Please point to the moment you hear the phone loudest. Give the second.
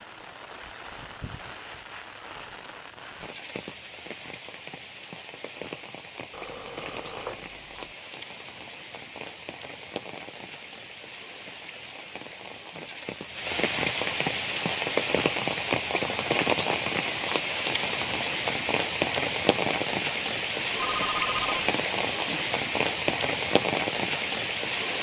21 s.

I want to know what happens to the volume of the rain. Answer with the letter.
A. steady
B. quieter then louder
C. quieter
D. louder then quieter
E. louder
E.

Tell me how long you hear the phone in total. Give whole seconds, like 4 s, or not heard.
2 s.